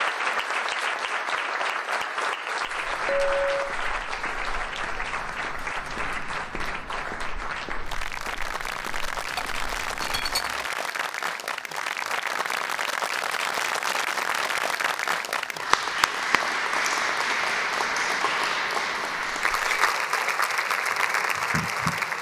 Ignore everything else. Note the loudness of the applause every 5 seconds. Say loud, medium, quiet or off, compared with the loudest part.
loud, medium, loud, loud, loud.